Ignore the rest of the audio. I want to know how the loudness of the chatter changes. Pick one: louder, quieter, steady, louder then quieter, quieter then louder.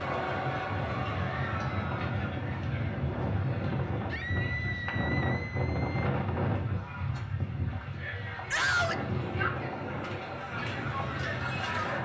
quieter then louder.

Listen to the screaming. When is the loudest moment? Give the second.
9 s.